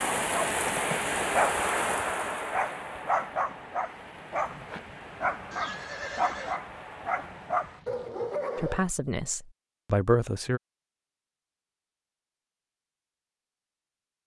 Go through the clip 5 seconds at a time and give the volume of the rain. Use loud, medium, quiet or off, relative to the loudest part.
loud, quiet, off.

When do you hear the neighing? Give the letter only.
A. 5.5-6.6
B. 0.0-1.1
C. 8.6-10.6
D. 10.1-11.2
A.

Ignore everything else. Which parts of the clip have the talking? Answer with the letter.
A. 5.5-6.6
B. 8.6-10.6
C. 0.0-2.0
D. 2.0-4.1
B.